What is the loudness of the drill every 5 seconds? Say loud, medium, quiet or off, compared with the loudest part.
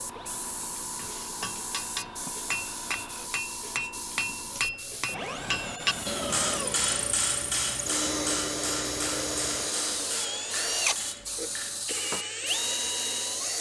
quiet, loud, loud.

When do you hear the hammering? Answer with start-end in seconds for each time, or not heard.
0.9-12.2.